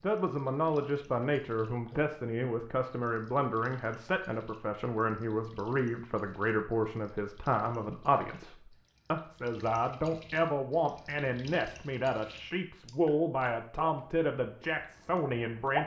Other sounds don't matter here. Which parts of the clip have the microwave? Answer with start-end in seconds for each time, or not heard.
not heard.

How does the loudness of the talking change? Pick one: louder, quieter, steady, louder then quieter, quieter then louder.
steady.